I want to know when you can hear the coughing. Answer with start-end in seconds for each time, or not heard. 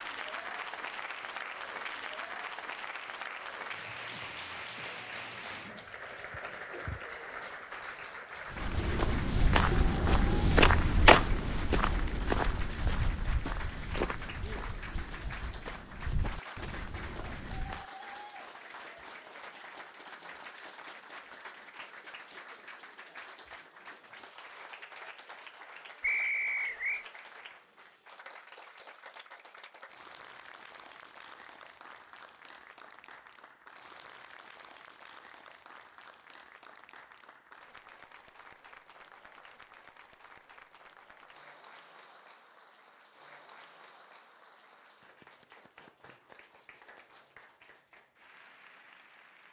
not heard.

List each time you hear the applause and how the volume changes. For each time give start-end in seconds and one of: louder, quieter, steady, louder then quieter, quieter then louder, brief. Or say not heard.
0.0-49.4 quieter.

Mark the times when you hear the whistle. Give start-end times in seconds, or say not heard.
26.0-27.1.